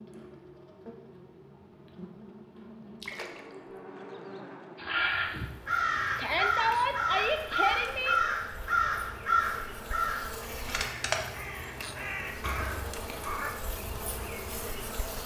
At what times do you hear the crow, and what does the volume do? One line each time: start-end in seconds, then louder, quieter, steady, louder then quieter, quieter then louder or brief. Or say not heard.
4.8-13.5 quieter.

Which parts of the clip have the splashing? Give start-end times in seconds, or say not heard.
3.0-3.5.